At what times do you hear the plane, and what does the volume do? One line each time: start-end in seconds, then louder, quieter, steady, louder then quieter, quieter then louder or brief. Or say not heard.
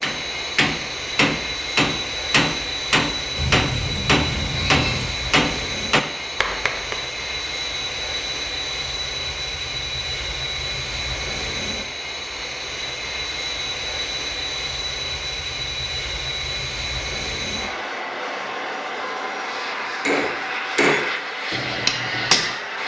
0.0-22.8 steady.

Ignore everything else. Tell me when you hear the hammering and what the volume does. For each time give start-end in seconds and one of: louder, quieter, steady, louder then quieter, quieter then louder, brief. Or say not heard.
0.0-7.0 steady
20.1-22.6 brief.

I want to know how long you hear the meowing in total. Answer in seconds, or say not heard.
2 s.